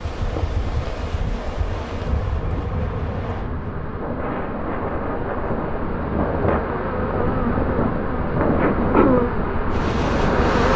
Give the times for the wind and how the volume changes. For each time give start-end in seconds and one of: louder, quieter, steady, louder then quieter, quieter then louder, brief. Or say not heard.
0.0-10.7 louder.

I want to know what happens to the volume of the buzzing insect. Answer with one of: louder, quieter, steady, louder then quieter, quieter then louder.
louder.